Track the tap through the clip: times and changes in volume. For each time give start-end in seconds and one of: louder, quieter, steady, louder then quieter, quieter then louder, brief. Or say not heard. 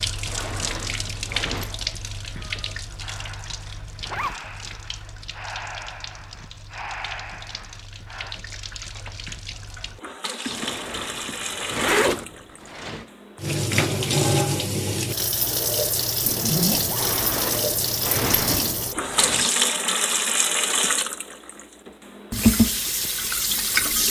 0.0-24.0 quieter then louder.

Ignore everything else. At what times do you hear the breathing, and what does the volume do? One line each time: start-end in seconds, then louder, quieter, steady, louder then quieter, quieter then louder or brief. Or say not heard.
2.4-8.4 louder.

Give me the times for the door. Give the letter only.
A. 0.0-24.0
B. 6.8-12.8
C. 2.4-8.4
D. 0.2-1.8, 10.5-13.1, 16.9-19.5
D.